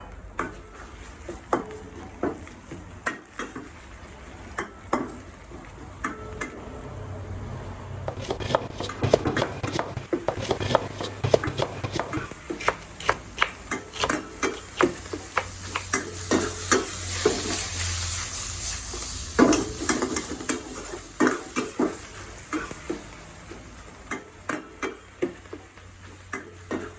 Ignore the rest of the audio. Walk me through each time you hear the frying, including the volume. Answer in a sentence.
The frying can be heard from 0.0 to 26.9 s, getting louder then quieter.